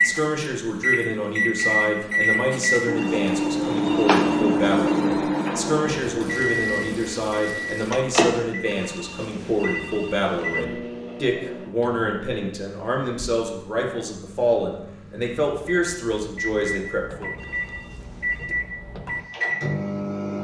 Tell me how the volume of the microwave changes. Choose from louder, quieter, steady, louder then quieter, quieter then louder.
quieter then louder.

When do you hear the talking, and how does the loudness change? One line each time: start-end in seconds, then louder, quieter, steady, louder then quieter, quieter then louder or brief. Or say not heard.
0.0-17.3 steady.